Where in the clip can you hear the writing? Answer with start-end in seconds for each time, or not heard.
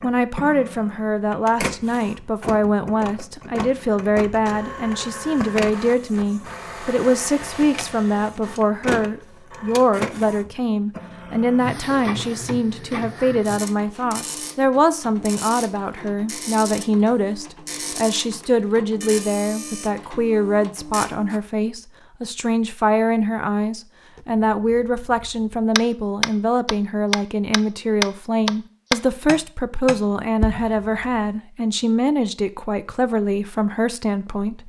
not heard.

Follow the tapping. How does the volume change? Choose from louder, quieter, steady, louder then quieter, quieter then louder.
louder then quieter.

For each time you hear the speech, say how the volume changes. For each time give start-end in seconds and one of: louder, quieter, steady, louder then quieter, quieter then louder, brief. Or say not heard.
0.0-34.6 steady.